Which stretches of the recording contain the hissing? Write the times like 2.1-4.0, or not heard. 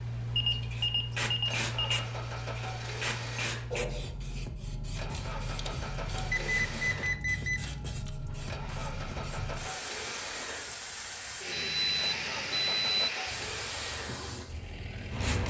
0.0-15.4.